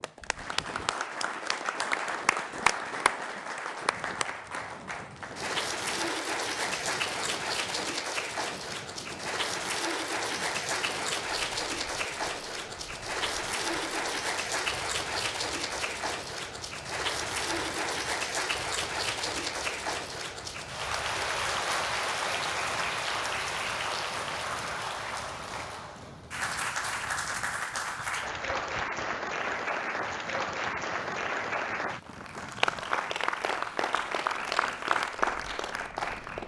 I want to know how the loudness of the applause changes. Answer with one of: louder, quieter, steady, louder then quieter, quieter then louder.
steady.